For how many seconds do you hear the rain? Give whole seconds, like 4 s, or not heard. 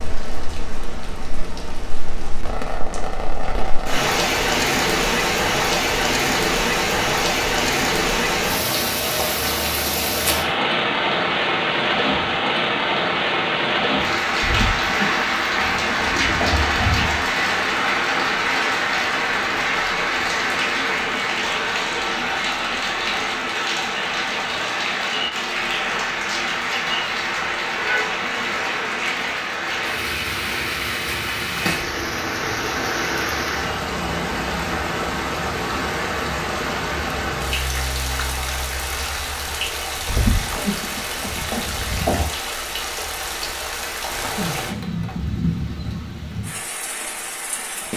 48 s.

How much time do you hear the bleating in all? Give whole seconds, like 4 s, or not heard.
5 s.